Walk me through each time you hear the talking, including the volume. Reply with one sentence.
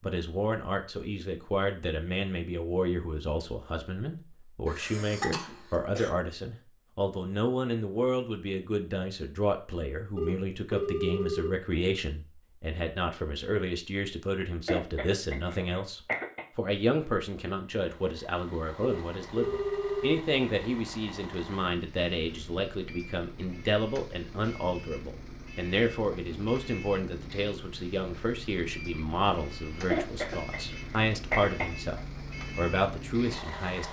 The talking can be heard from 0.0 to 33.8 s, at a steady volume.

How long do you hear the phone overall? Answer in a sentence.
You can hear the phone for 3 seconds altogether.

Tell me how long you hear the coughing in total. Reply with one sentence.
The coughing can be heard for 5 seconds in total.